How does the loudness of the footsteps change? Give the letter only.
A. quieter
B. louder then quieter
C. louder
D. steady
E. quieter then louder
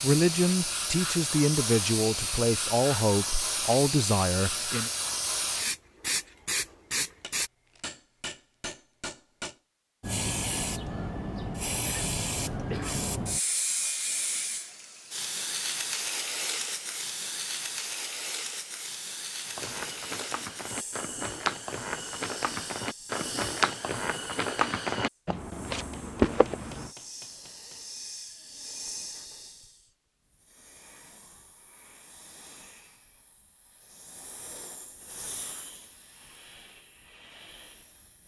C.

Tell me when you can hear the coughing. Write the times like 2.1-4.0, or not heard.
11.8-13.1.